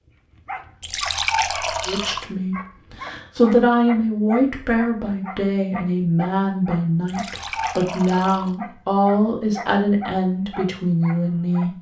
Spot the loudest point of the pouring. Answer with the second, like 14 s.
1 s.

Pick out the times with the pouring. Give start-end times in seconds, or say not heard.
0.8-2.2, 7.0-8.6.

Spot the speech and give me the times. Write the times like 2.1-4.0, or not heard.
1.9-11.7.